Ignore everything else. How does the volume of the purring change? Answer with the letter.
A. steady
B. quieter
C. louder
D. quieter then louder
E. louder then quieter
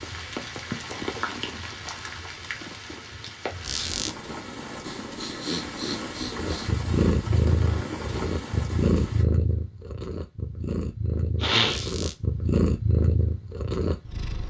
D.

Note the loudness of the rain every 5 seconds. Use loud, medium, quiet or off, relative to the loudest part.
loud, loud, off.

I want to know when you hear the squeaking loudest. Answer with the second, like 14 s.
4 s.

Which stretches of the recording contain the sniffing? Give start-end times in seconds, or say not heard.
0.6-3.0, 4.8-6.7, 11.4-11.8.